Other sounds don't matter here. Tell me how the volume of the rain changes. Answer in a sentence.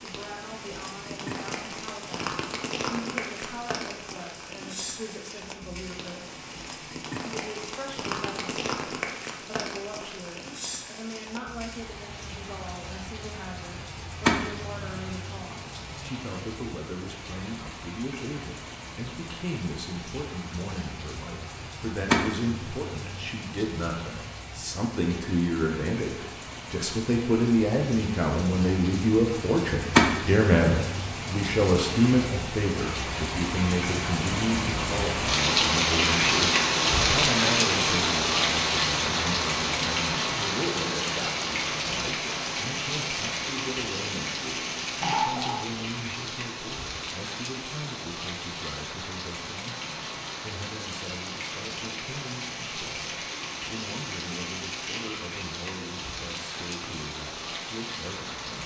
The volume of the rain goes up, then down.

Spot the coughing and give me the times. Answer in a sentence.
The coughing can be heard from 45.0 to 45.8 s.